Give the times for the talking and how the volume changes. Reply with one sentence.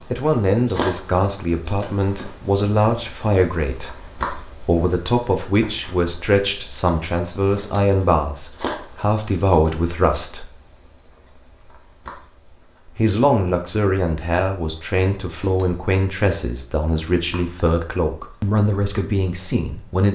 You can hear the talking from 0.1 to 10.5 s, at a steady volume; and from 12.9 to 20.1 s, at a steady volume.